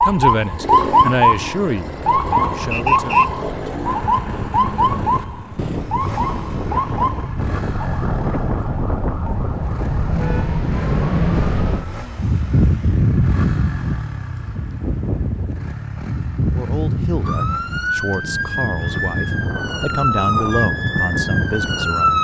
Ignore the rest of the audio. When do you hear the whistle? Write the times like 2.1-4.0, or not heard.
2.7-3.3.